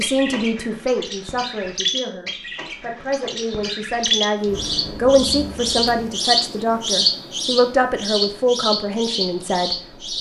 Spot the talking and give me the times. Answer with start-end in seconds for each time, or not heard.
0.0-10.0.